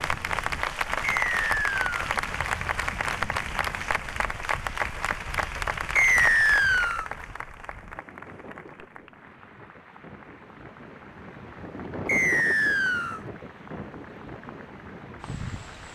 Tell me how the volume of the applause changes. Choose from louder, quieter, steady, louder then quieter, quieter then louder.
quieter.